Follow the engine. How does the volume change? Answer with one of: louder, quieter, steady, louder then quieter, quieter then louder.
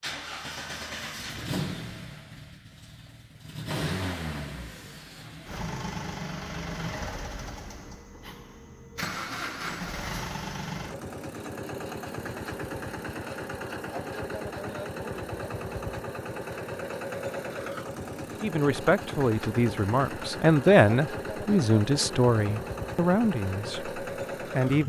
steady.